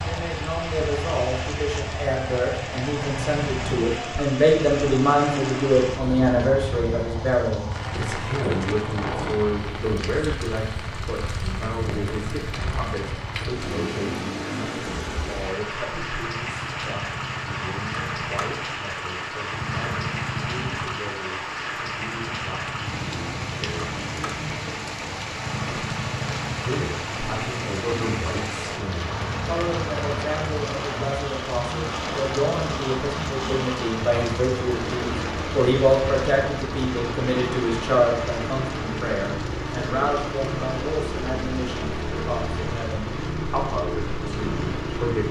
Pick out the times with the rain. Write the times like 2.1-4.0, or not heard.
0.0-45.2.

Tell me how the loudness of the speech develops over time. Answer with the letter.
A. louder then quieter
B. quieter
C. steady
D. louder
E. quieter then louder
E.